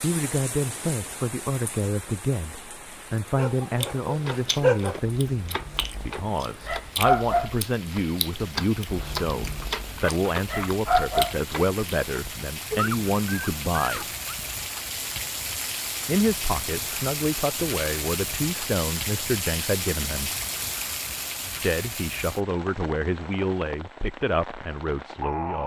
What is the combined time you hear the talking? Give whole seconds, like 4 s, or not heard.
22 s.